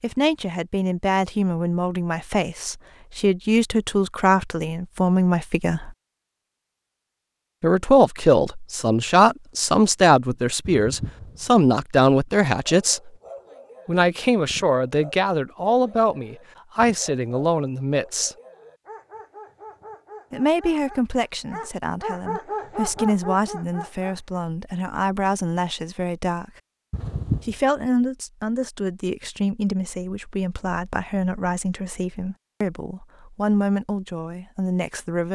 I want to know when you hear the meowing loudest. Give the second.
27 s.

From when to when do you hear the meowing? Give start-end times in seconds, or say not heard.
10.7-11.6, 26.9-27.6.